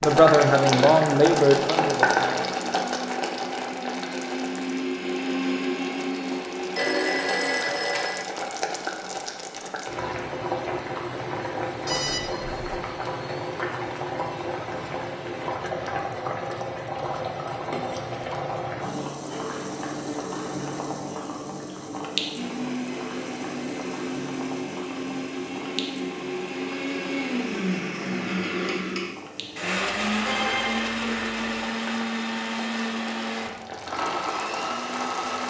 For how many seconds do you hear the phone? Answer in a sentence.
You can hear the phone for 4 seconds altogether.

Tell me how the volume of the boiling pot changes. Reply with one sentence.
The volume of the boiling pot goes down.